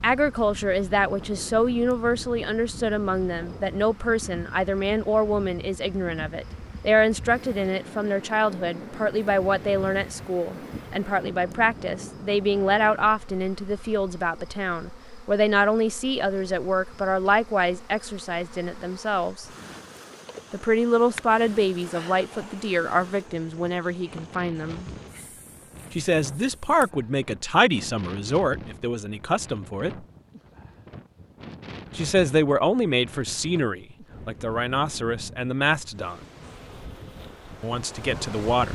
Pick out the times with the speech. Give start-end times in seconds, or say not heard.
0.0-19.4, 20.5-24.9, 25.9-30.1, 31.9-36.2, 37.6-38.7.